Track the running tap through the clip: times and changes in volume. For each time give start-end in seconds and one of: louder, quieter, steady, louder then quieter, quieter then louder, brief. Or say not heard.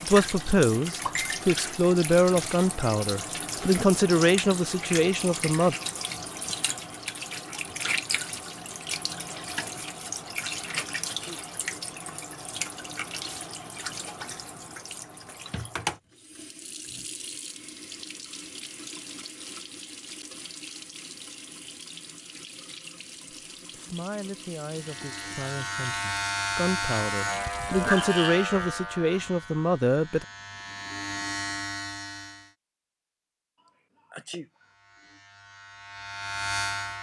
0.0-28.1 quieter.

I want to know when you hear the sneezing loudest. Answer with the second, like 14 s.
34 s.